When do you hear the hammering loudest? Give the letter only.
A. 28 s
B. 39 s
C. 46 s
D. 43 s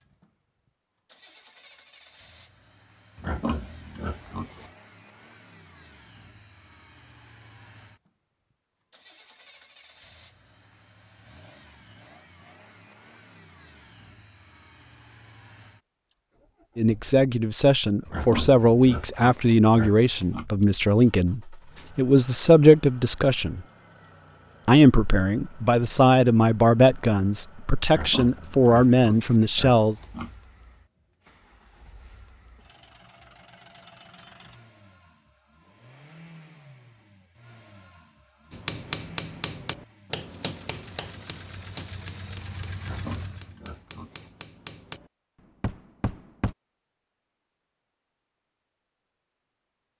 B.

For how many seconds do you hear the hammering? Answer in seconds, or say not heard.
8 s.